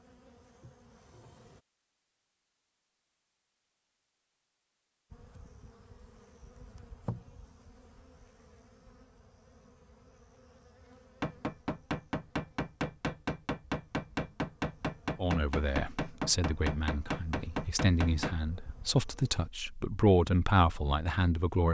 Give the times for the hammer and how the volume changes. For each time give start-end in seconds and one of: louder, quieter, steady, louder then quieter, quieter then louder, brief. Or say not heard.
11.2-18.4 steady.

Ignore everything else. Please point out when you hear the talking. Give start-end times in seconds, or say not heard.
15.2-21.7.